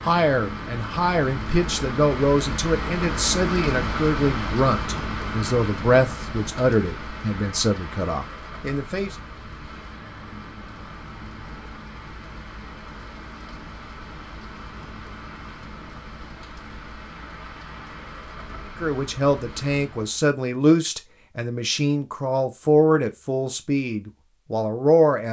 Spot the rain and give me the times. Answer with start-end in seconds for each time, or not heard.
0.0-20.2.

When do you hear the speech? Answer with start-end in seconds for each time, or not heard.
0.0-9.2, 18.8-25.2.